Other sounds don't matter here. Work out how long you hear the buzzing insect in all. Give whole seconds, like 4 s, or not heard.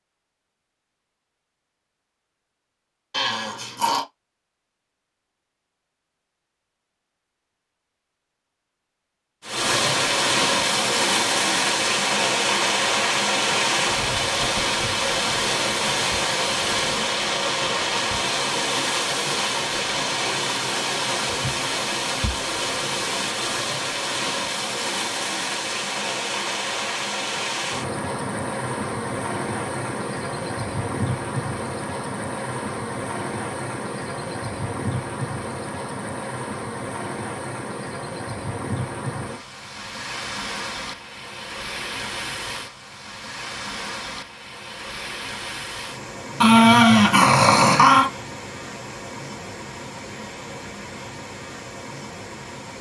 not heard.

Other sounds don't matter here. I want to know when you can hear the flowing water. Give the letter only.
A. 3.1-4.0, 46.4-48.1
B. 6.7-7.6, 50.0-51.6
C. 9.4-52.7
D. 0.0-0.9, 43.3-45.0
C.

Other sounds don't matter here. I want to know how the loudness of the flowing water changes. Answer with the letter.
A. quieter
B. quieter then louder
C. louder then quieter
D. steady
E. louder
A.